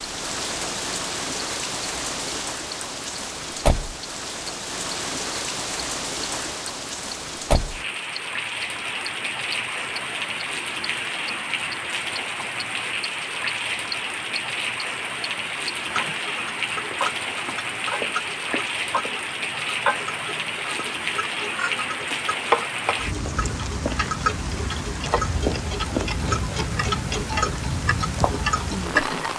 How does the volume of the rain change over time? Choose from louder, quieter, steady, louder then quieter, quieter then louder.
steady.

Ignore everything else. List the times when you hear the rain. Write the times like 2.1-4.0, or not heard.
0.0-29.3.